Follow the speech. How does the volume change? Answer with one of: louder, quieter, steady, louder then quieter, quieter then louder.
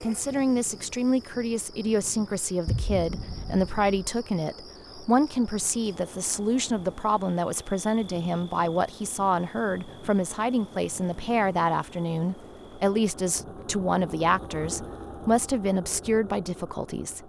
steady.